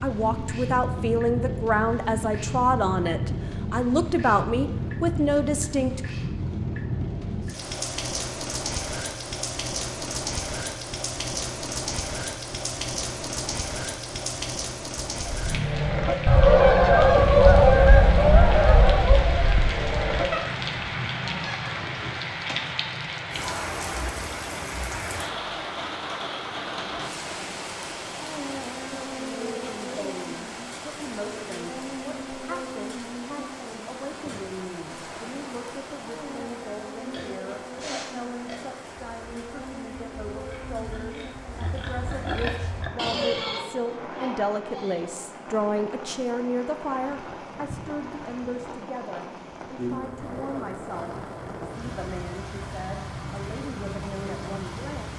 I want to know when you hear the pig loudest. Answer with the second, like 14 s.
43 s.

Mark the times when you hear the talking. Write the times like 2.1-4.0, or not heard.
0.0-6.0, 29.1-55.1.